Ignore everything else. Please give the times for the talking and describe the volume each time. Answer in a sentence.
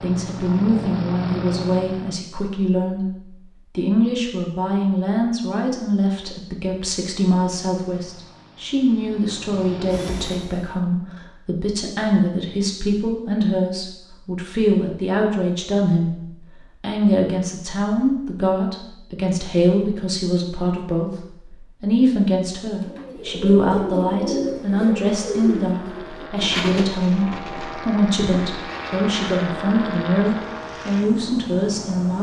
The talking can be heard from 0.0 to 32.1 s, at a steady volume.